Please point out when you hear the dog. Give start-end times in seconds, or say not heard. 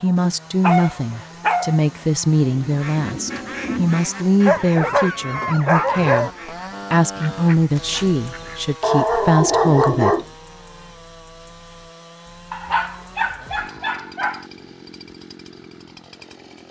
0.6-1.8, 4.4-6.3, 8.8-10.2, 12.5-14.4.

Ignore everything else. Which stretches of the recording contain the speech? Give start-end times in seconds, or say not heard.
0.0-6.3, 6.9-10.2.